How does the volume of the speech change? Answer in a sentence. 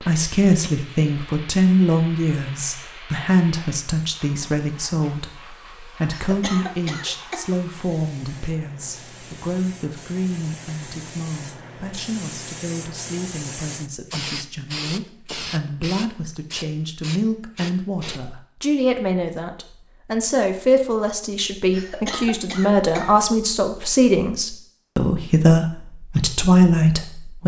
The volume of the speech goes down, then up.